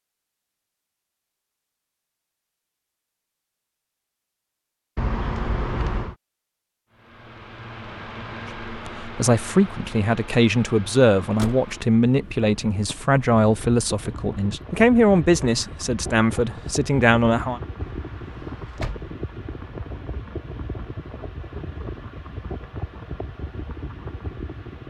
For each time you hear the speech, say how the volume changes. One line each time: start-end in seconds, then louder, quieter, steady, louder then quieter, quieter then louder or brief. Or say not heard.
8.7-17.6 steady.